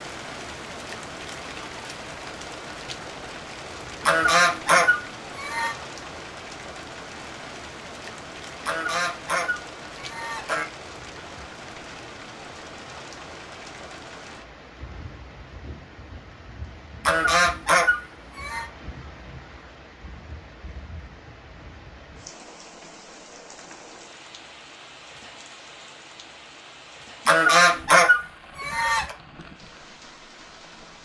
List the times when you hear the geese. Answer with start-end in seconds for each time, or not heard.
4.0-5.8, 8.7-10.7, 17.1-18.6, 27.2-29.1.